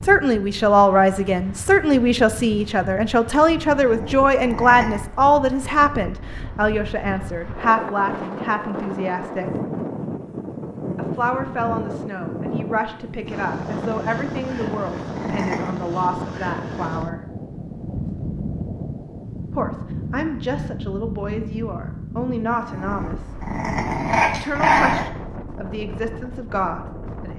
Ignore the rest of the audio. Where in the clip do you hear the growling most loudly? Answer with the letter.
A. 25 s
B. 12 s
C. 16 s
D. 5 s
A.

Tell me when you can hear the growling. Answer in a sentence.
The growling can be heard from 3.6 to 5.0 s, from 14.6 to 15.8 s and from 22.6 to 25.1 s.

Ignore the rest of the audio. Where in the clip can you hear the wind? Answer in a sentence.
The wind can be heard from 0.0 to 27.3 s.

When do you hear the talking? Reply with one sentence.
The talking can be heard from 0.1 to 9.5 s, from 10.9 to 17.2 s, from 19.5 to 23.3 s and from 24.4 to 27.3 s.